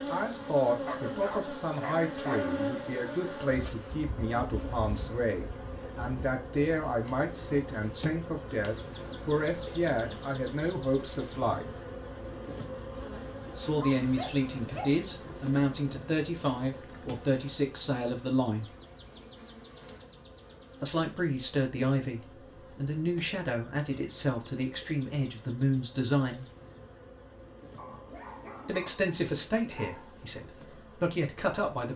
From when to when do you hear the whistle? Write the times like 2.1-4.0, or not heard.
not heard.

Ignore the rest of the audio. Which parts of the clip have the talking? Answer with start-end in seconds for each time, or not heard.
0.1-11.7, 13.6-18.7, 20.8-26.4, 28.6-31.9.